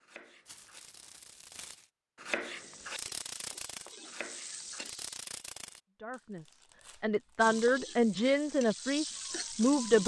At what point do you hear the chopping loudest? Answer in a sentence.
The volume of the chopping peaks at 2 seconds.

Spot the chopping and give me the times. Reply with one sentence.
You can hear the chopping from 0.0 to 5.8 s.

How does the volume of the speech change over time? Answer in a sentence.
The loudness of the speech goes up, then down.